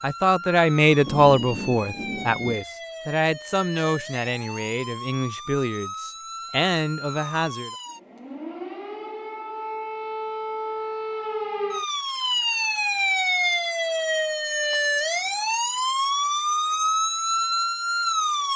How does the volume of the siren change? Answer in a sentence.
The volume of the siren goes up.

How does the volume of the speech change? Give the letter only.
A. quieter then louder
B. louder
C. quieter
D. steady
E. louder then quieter
C.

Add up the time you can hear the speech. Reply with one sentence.
The speech can be heard for 8 seconds in total.